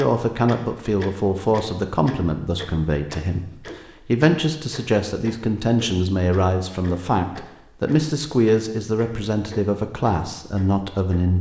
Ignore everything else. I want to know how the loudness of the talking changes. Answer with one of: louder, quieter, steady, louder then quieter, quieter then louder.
steady.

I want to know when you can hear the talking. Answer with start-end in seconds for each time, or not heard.
0.0-11.3.